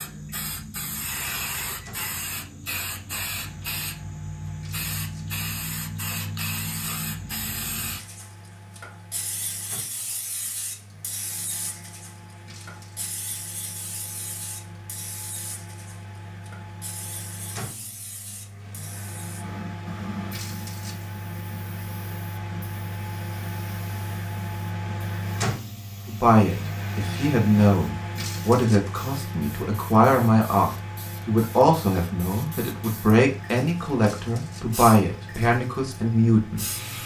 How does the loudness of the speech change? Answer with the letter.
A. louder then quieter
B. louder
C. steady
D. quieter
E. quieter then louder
C.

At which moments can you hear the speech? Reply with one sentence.
The speech can be heard from 26.1 to 36.8 s.